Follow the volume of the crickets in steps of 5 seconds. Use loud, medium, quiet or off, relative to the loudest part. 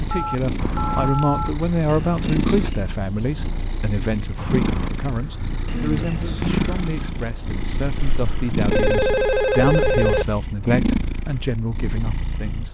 loud, loud, off.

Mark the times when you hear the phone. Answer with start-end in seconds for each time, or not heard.
0.1-1.6, 5.7-6.8, 8.7-10.2.